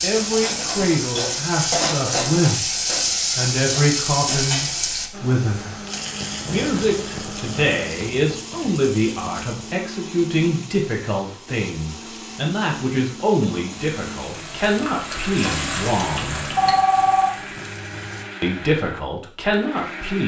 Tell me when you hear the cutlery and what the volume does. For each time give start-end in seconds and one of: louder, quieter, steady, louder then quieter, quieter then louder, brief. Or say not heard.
not heard.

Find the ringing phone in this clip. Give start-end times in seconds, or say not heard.
16.0-17.3.